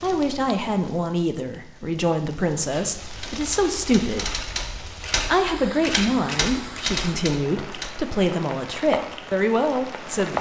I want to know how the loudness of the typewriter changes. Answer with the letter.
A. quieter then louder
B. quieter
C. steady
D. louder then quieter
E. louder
E.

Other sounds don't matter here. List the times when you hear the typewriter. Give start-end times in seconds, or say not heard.
3.0-7.9.